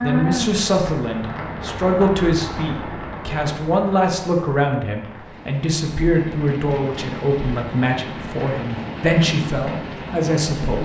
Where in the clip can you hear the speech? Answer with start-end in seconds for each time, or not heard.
0.0-10.8.